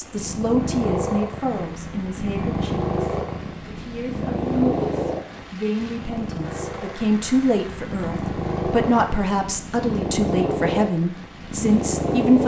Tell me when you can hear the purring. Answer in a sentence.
You can hear the purring from 0.1 to 12.4 s.